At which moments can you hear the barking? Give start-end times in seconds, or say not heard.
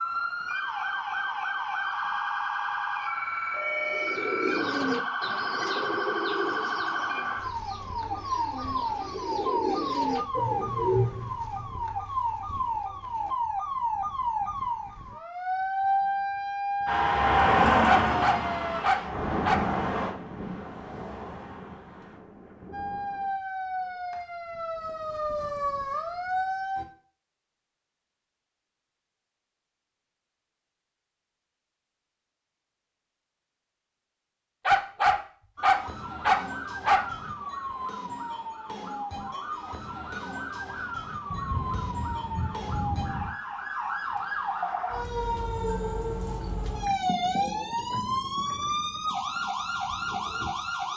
17.9-19.6, 34.6-37.1.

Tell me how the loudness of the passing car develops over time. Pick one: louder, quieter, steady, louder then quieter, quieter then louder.
quieter.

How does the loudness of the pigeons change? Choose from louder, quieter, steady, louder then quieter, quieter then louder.
quieter then louder.